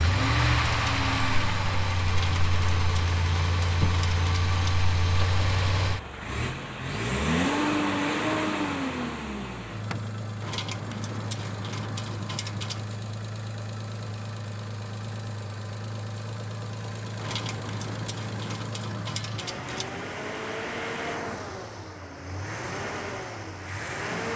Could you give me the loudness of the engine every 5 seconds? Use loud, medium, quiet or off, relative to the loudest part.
loud, loud, medium, medium, medium.